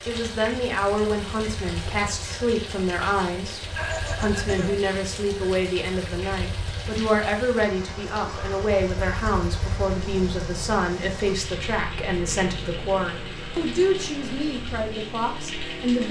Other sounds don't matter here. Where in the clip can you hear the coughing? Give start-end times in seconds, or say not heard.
3.7-4.8.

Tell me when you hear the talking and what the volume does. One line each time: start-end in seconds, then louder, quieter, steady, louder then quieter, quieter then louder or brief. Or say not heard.
0.1-16.0 steady.